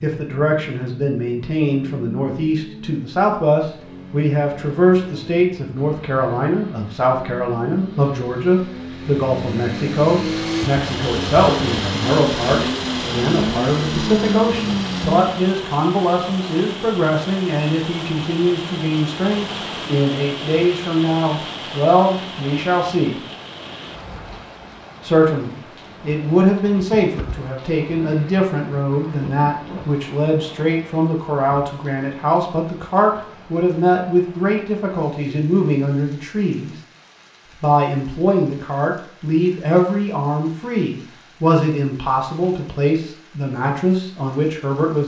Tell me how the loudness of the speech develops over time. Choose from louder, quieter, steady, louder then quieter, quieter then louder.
steady.